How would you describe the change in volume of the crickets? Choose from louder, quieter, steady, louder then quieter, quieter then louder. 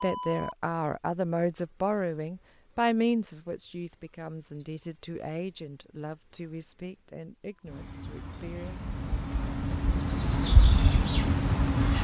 louder.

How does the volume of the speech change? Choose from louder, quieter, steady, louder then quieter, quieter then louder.
quieter.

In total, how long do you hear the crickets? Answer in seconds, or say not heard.
12 s.